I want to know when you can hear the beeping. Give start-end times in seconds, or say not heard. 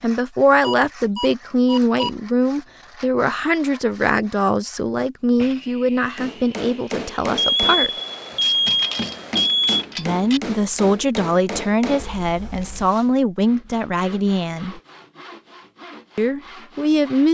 0.6-2.1, 7.3-9.8, 11.9-12.9.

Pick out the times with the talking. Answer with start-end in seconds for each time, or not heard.
0.0-7.9, 9.9-14.8, 16.1-17.2.